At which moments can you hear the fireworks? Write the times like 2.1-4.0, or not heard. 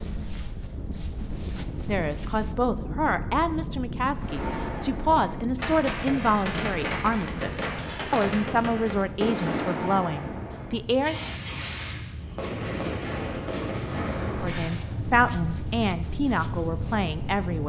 4.2-14.8.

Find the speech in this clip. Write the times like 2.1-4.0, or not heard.
1.9-11.2, 14.4-17.6.